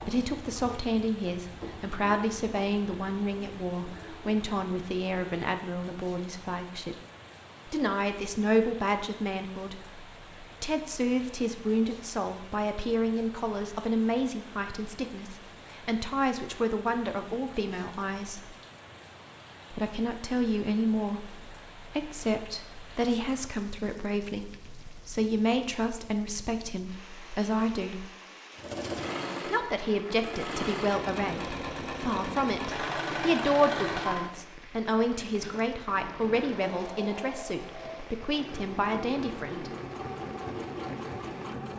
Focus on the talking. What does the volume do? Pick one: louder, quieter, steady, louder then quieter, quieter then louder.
steady.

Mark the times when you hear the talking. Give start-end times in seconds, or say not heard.
0.1-7.0, 7.7-18.6, 19.7-28.1, 29.4-39.7.